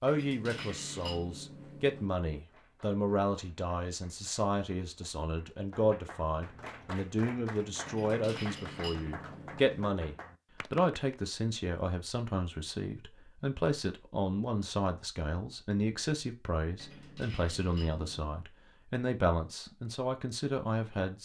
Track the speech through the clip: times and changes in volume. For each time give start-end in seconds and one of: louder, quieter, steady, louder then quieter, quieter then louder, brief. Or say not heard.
0.0-21.2 steady.